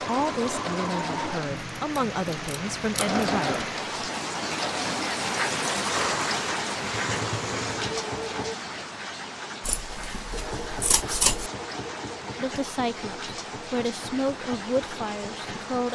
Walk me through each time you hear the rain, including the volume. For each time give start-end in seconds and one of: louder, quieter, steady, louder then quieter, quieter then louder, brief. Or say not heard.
0.0-15.9 louder then quieter.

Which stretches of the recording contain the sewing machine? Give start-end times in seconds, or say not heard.
0.0-8.6, 10.3-15.9.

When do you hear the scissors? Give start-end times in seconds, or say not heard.
1.4-3.2, 9.6-11.5.